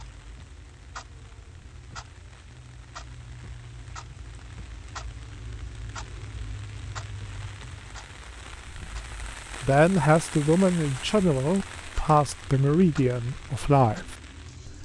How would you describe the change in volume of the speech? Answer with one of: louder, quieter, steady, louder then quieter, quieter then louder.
steady.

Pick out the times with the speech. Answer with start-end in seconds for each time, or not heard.
9.6-14.7.